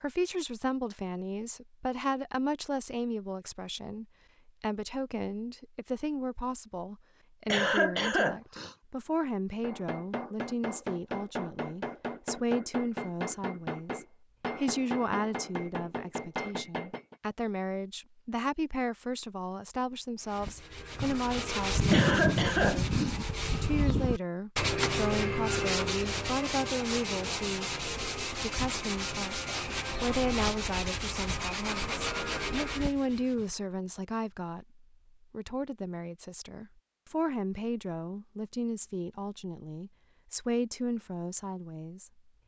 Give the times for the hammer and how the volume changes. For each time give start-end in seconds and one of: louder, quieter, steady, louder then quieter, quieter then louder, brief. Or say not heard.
9.6-17.1 steady.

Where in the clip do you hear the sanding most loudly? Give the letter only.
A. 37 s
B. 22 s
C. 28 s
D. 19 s
B.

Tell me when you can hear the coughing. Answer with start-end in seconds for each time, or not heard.
7.5-8.8, 21.9-23.1.